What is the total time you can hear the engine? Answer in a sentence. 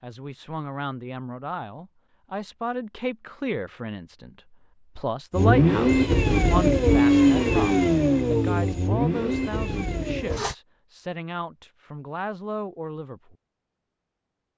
The engine can be heard for 5 seconds in total.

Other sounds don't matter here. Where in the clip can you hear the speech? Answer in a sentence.
You can hear the speech from 0.0 to 4.3 s and from 5.0 to 13.3 s.